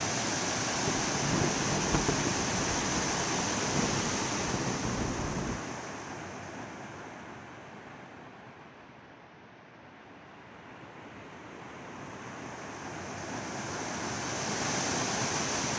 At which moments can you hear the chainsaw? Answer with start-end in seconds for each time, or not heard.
not heard.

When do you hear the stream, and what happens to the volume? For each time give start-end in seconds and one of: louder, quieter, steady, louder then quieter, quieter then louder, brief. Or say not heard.
0.0-15.7 quieter then louder.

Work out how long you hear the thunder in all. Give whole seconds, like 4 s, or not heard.
5 s.